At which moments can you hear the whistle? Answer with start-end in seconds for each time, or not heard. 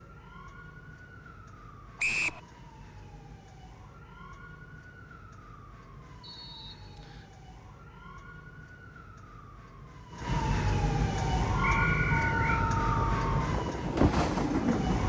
1.9-2.4, 6.2-7.3, 11.6-12.4.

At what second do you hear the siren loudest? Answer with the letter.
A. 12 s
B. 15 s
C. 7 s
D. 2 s
A.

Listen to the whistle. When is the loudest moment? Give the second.
2 s.